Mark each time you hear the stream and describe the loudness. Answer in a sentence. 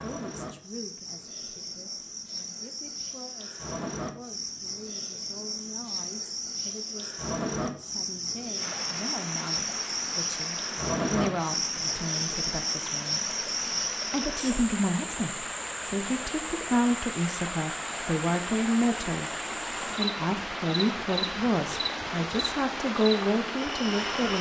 You can hear the stream from 8.6 to 24.3 s, getting louder.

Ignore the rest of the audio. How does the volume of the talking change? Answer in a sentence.
The loudness of the talking goes up.